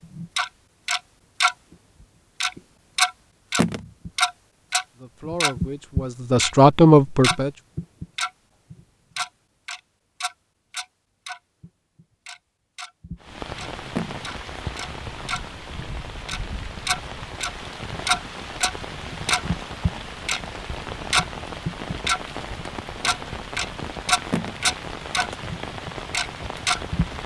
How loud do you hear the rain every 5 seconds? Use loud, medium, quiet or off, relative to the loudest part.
off, off, loud, loud, loud, loud.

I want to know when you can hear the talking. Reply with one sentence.
You can hear the talking from 5.0 to 7.5 s.